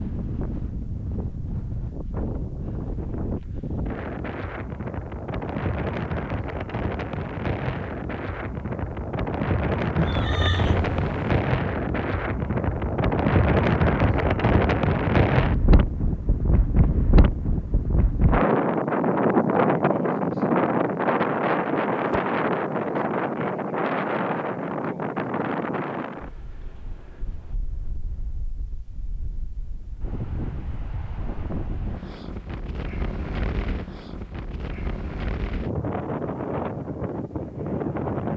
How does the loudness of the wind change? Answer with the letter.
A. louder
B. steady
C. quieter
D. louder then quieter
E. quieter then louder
D.